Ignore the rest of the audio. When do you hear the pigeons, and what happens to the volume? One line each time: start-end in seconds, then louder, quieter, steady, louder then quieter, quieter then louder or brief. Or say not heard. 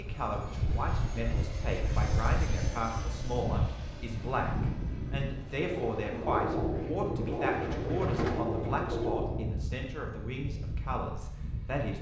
5.5-9.6 steady.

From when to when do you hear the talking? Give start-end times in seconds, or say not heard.
0.0-11.9.